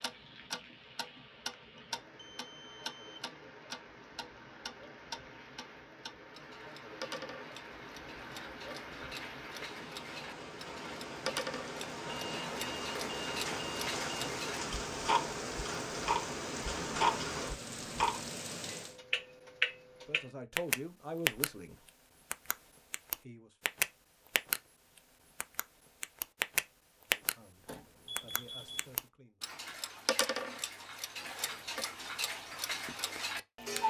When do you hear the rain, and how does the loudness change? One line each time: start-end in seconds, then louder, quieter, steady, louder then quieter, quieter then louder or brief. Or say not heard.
0.0-19.0 louder.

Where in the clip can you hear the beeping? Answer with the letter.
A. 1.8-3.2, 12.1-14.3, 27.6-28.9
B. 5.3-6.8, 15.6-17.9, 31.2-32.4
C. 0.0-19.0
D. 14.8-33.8
A.